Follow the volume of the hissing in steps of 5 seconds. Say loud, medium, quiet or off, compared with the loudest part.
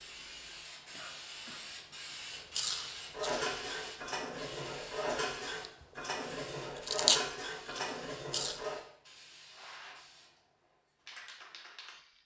loud, medium, medium.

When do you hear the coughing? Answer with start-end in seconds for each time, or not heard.
0.9-1.6.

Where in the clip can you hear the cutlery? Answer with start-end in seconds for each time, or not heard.
3.1-8.8.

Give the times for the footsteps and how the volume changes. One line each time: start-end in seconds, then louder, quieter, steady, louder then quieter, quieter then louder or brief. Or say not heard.
not heard.